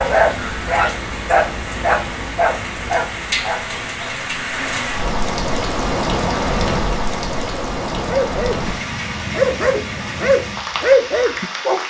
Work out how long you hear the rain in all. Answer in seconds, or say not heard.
12 s.